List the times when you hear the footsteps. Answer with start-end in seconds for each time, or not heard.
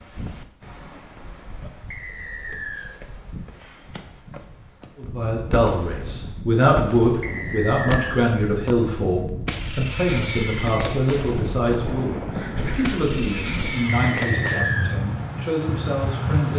not heard.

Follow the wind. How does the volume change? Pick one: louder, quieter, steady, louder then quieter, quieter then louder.
louder.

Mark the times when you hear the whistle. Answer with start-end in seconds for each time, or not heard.
1.9-2.9, 7.2-8.2, 13.8-14.9.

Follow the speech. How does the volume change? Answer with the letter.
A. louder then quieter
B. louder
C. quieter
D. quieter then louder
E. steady
C.